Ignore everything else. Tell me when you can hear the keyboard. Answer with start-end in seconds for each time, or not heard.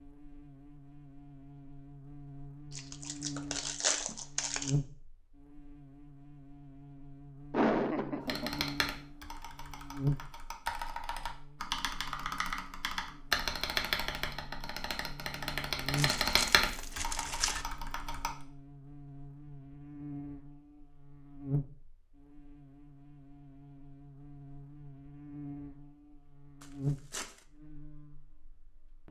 8.2-18.4.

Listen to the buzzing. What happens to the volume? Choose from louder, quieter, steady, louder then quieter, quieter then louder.
steady.